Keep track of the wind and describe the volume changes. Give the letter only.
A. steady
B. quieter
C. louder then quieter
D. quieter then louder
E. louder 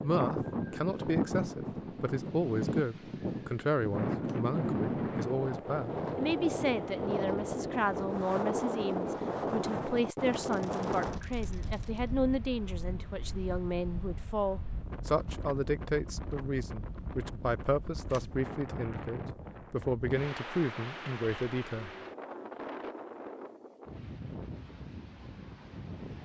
B.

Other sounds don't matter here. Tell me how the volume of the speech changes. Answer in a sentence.
The loudness of the speech stays about the same.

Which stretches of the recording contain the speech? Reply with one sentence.
The speech can be heard from 0.0 to 21.9 s.